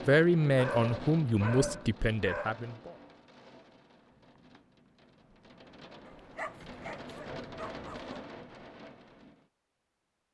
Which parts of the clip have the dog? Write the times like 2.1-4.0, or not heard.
0.4-2.6, 6.0-8.2.